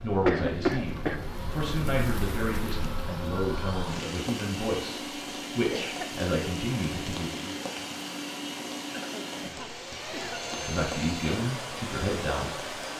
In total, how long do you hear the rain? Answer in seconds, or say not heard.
13 s.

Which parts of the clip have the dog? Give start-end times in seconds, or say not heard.
not heard.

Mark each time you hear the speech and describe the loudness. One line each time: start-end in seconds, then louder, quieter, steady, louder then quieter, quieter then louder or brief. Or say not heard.
0.0-7.6 steady
10.7-12.8 brief.